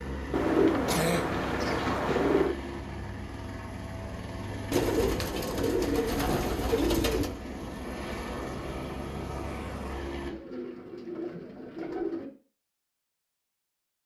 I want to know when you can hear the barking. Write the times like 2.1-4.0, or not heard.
not heard.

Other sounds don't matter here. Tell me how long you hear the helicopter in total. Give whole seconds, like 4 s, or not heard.
10 s.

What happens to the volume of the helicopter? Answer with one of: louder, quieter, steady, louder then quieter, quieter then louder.
steady.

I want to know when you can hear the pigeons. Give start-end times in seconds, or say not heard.
0.3-2.5, 4.7-7.3, 10.2-12.3.